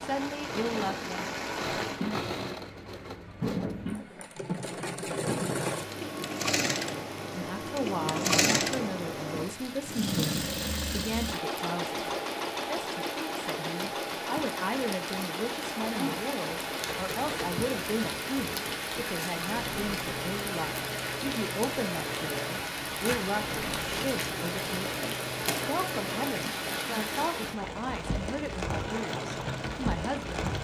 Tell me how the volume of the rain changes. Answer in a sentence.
The loudness of the rain goes down, then up.